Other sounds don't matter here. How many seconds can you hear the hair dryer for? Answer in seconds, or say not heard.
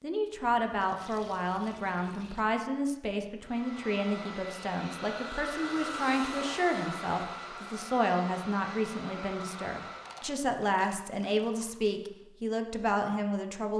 7 s.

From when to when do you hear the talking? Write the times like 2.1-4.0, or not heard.
0.0-13.7.